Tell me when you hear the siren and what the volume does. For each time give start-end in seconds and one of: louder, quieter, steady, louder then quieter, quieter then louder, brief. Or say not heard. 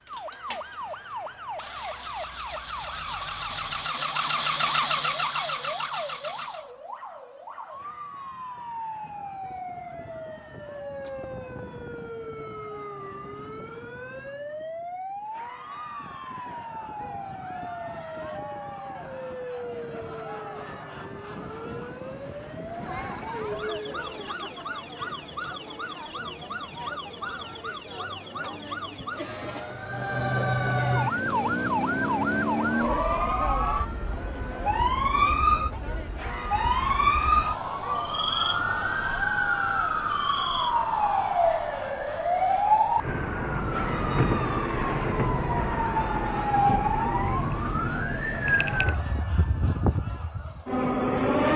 0.0-51.5 louder.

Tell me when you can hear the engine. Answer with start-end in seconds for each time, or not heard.
0.0-6.7.